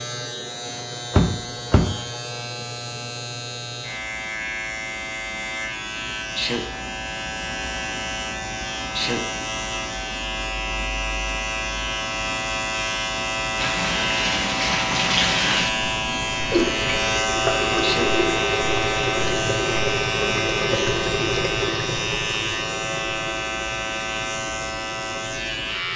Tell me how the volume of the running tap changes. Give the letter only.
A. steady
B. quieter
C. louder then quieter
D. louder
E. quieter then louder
B.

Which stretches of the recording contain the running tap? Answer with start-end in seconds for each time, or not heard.
13.6-25.9.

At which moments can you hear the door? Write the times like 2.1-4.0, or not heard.
1.1-1.9.